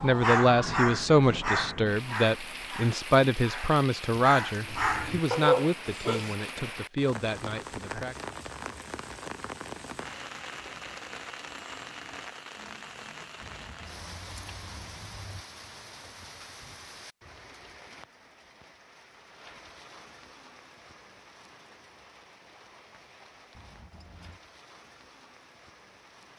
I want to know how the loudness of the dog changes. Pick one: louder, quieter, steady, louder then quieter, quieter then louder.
quieter then louder.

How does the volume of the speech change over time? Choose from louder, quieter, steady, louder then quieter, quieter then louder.
quieter.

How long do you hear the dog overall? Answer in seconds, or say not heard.
6 s.